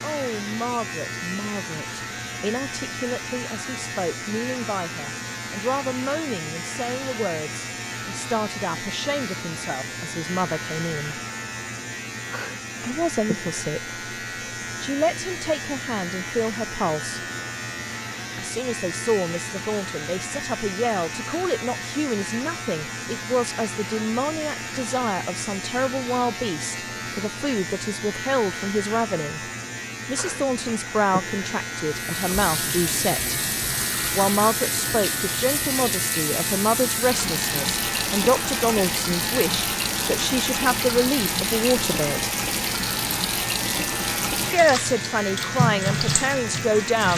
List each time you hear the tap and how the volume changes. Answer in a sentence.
You can hear the tap from 31.9 to 47.1 s, at a steady volume.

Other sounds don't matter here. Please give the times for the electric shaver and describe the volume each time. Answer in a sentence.
You can hear the electric shaver from 0.0 to 47.1 s, at a steady volume.